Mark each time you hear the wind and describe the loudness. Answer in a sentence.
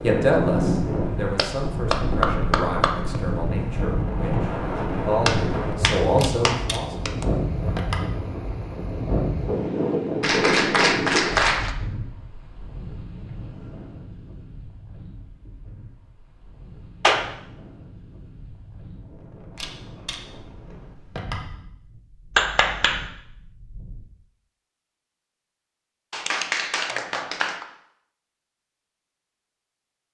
You can hear the wind from 0.0 to 24.1 s, getting quieter.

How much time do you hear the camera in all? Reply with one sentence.
You can hear the camera for 4 seconds altogether.